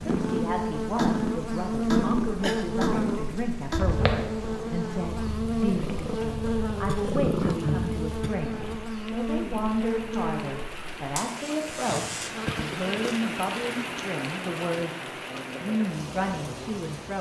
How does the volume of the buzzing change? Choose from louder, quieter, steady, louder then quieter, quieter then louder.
quieter.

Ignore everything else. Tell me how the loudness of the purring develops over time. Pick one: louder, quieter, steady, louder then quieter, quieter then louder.
quieter then louder.